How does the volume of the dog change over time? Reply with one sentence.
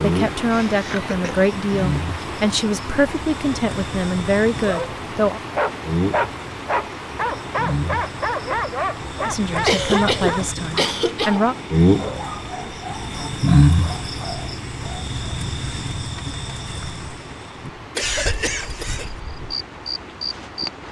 The volume of the dog goes down.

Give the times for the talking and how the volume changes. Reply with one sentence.
The talking can be heard from 0.0 to 5.4 s, at a steady volume; and briefly from 9.2 to 11.6 s.